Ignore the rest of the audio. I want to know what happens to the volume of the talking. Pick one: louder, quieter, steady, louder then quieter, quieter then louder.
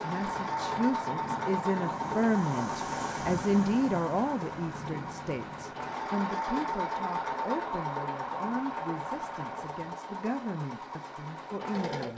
quieter.